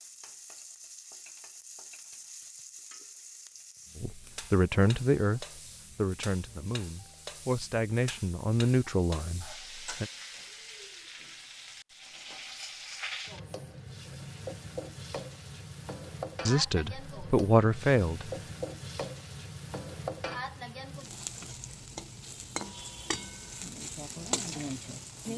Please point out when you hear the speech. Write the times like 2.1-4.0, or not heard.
4.0-10.1, 16.4-18.3.